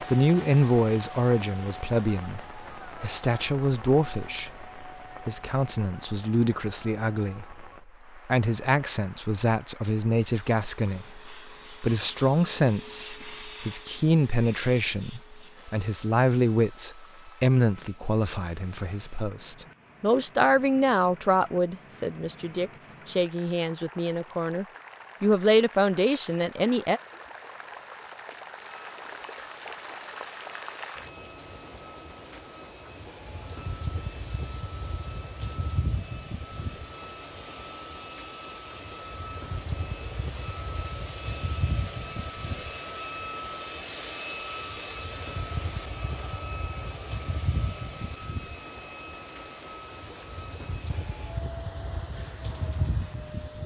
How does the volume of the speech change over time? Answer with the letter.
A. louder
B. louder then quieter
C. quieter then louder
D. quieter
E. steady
E.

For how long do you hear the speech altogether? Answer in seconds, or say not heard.
27 s.